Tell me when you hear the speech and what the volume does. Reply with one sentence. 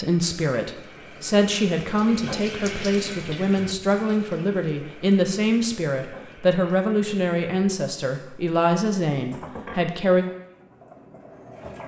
The speech can be heard from 0.0 to 10.2 s, at a steady volume.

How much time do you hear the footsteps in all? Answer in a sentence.
You can't hear the footsteps here.